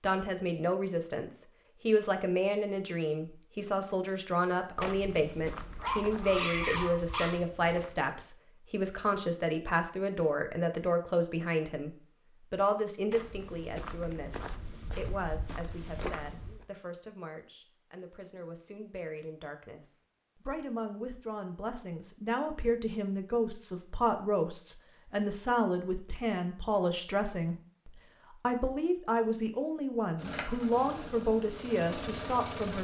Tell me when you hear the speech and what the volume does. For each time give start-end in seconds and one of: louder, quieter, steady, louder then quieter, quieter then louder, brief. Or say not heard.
0.0-32.7 quieter then louder.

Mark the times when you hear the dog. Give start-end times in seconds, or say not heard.
5.8-7.3.